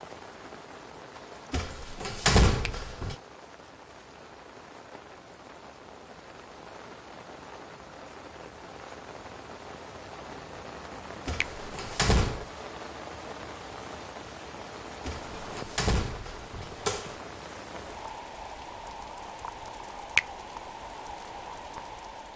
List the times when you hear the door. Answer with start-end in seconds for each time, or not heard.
1.5-3.1, 11.2-12.4, 15.1-17.1.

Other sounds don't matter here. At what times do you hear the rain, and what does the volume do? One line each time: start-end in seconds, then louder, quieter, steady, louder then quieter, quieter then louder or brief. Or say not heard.
0.0-22.3 louder.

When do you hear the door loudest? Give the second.
2 s.